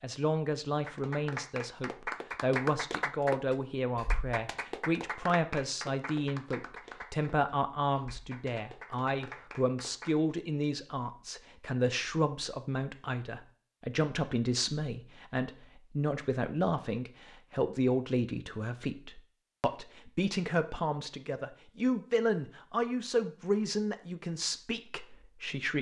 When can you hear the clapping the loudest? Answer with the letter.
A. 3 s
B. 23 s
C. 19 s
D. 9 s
A.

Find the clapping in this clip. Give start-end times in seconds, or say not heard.
0.8-7.3, 8.0-10.1.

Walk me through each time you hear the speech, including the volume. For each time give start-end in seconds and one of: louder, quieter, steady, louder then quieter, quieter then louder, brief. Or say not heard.
0.0-25.7 steady.